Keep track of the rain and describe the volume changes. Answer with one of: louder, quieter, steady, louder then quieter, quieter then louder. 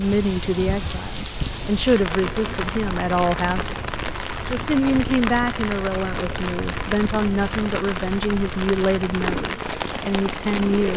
steady.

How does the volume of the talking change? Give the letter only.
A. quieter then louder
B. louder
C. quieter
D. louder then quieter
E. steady
E.